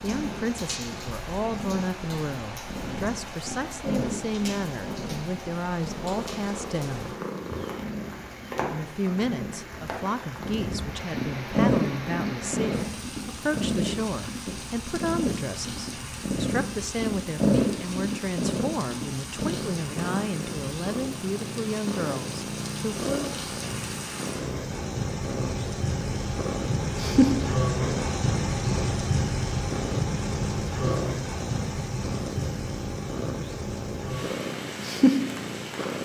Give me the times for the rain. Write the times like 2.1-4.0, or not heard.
0.0-36.0.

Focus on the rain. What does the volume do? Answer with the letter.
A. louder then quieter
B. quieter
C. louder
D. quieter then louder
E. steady
C.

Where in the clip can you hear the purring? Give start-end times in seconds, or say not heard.
0.0-36.0.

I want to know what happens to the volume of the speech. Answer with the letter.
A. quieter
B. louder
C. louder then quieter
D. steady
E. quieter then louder
D.